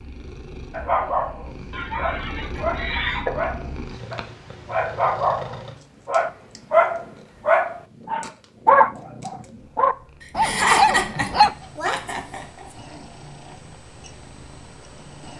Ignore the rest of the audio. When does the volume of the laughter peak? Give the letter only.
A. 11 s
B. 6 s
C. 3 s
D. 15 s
A.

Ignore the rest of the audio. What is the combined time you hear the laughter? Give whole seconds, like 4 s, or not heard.
4 s.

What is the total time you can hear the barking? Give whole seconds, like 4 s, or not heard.
11 s.